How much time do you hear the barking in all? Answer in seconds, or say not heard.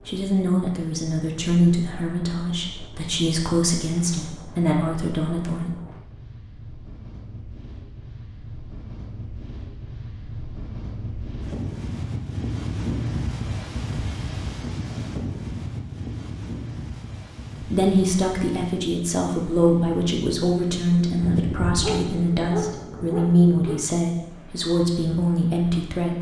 3 s.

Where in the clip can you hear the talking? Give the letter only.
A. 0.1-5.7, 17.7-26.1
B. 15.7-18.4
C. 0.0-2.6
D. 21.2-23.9
A.